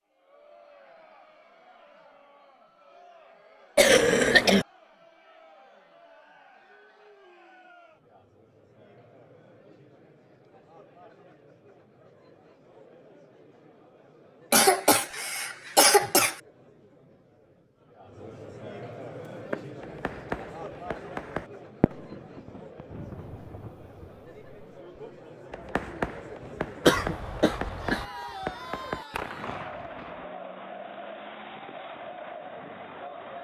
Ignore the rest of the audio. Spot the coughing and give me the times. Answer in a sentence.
The coughing can be heard from 3.8 to 4.7 s, from 14.5 to 16.4 s and from 26.9 to 28.1 s.